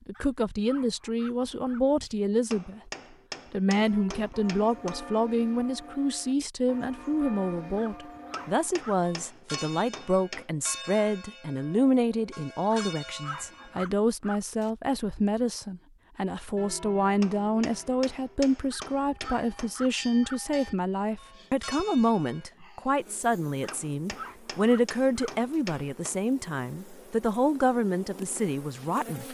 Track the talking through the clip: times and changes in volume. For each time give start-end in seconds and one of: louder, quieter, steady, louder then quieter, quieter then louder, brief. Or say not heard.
0.1-2.9 brief
3.5-29.2 steady.